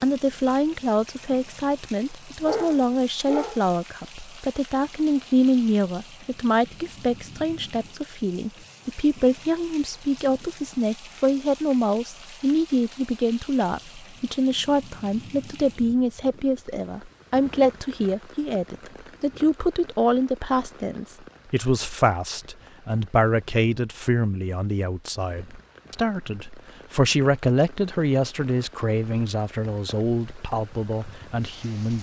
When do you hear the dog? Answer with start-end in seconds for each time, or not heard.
2.4-3.6.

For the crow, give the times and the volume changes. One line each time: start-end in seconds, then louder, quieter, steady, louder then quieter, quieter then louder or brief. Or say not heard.
not heard.